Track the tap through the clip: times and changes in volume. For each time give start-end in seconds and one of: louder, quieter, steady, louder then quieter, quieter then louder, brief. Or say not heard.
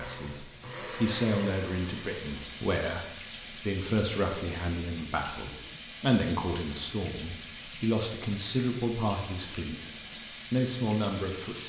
0.0-11.6 steady.